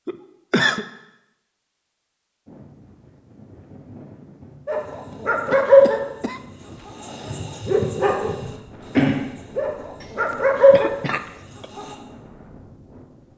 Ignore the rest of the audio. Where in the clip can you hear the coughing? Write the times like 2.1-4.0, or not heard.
0.1-0.8, 5.5-6.9, 10.0-11.7.